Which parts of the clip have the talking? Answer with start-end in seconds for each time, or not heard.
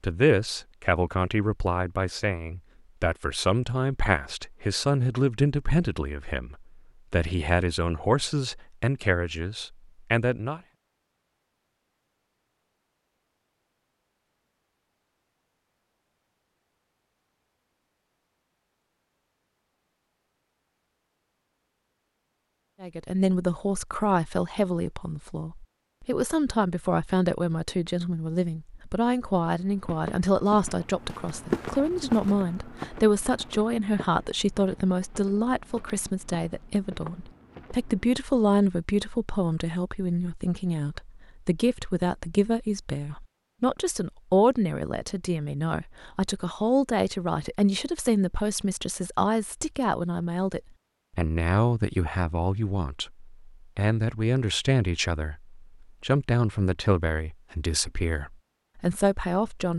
0.0-10.6, 22.8-59.7.